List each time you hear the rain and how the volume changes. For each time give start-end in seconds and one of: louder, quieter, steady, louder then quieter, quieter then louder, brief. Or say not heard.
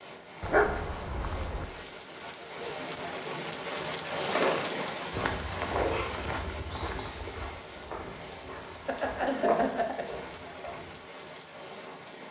0.0-12.2 louder then quieter.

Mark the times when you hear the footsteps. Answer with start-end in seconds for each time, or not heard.
5.1-11.1.